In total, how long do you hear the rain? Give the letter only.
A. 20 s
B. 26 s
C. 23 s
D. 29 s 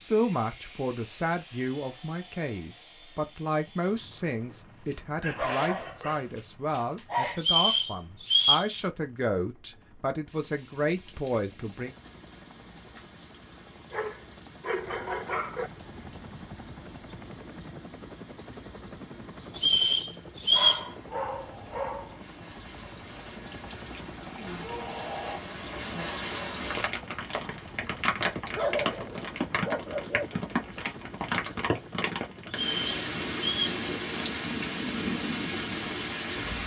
B.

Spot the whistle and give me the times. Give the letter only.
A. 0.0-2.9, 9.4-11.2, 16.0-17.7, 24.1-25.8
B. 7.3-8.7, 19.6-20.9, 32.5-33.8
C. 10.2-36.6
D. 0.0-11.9
B.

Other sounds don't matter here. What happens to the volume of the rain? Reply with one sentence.
The volume of the rain goes up.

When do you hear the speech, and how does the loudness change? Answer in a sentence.
You can hear the speech from 0.0 to 11.9 s, at a steady volume.